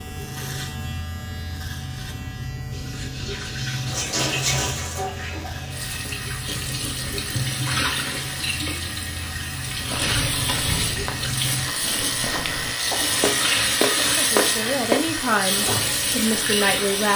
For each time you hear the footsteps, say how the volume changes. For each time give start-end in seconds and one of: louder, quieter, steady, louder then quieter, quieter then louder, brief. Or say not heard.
9.8-15.1 quieter then louder.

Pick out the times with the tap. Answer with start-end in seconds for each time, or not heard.
2.7-17.1.